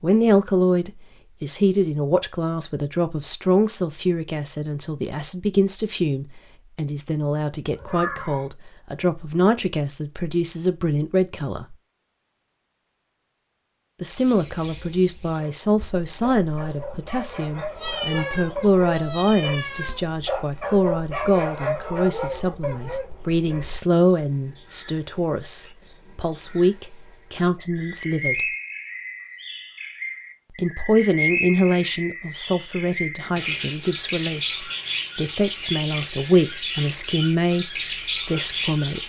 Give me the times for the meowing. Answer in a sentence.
You can hear the meowing from 7.7 to 8.4 s, from 17.7 to 20.1 s and from 27.8 to 28.4 s.